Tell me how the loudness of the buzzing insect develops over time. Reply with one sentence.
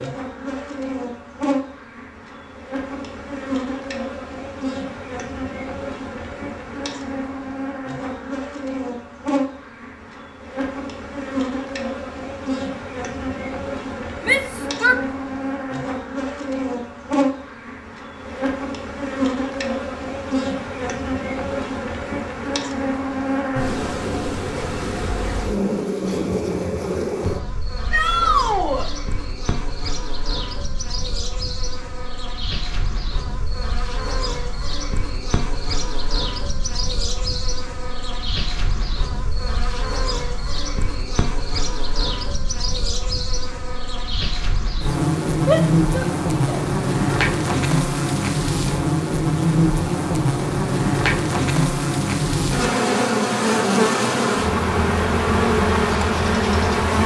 The volume of the buzzing insect goes up.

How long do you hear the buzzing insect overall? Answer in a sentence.
You can hear the buzzing insect for 57 seconds altogether.